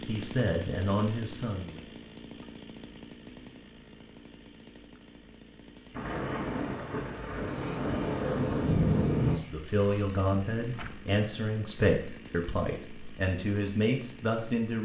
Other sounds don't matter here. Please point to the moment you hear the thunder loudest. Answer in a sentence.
The volume of the thunder peaks at 9 seconds.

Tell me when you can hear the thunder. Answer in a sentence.
The thunder can be heard from 5.9 to 9.4 s.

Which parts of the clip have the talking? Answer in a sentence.
The talking can be heard from 0.1 to 1.8 s and from 9.2 to 14.7 s.